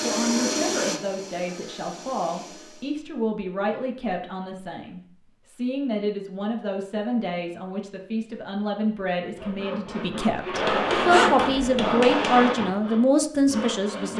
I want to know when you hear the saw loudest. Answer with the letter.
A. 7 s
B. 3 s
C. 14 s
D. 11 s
D.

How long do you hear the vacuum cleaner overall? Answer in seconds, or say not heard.
3 s.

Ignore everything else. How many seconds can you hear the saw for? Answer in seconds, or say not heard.
5 s.